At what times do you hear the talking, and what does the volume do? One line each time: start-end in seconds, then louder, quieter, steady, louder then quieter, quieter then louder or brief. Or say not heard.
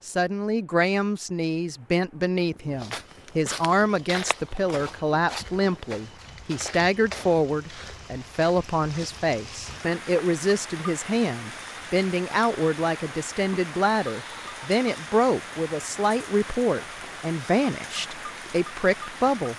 0.1-19.5 steady.